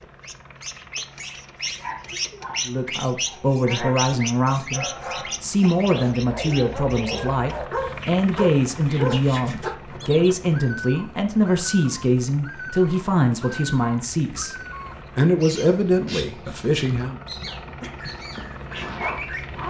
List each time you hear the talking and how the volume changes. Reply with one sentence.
The talking can be heard from 2.6 to 14.6 s, at a steady volume; and briefly from 15.2 to 17.2 s.